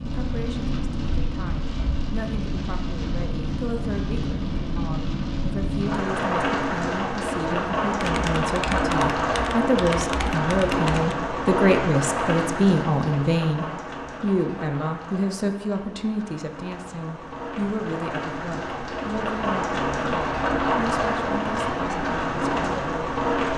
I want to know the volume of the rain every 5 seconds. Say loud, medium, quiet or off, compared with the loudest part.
medium, loud, loud, medium, loud.